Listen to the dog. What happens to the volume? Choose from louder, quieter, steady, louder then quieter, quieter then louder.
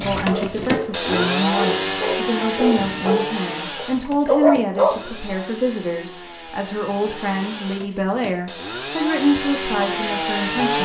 louder.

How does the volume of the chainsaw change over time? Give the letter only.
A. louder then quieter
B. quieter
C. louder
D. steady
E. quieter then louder
E.